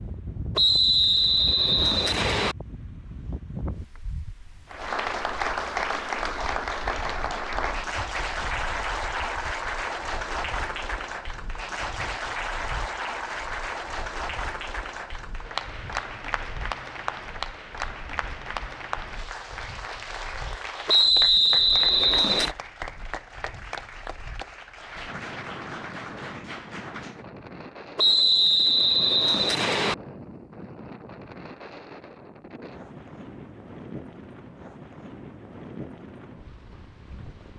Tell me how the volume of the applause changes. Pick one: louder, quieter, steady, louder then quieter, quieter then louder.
quieter.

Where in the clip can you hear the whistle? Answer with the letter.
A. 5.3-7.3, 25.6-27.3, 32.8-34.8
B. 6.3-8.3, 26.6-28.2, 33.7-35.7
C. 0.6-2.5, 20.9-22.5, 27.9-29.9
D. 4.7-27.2
C.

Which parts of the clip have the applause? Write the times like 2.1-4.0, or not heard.
4.7-27.2.